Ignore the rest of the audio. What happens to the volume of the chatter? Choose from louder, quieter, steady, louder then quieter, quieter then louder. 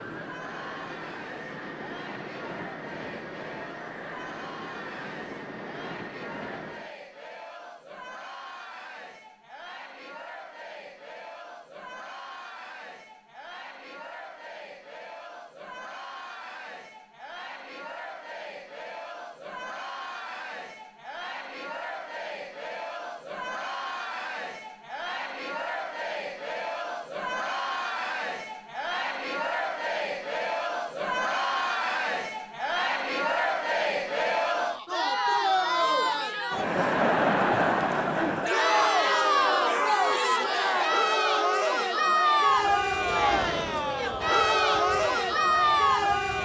louder.